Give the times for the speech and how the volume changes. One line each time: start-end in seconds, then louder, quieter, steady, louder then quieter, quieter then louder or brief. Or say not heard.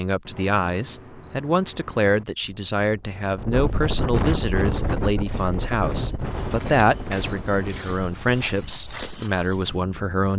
0.0-10.3 steady.